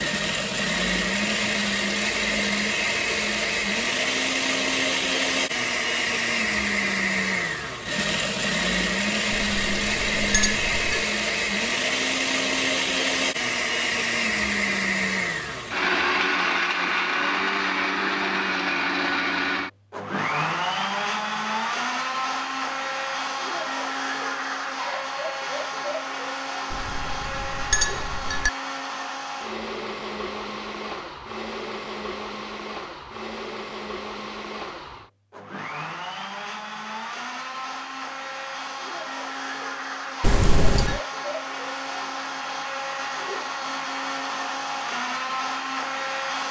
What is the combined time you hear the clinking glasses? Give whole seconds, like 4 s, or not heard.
4 s.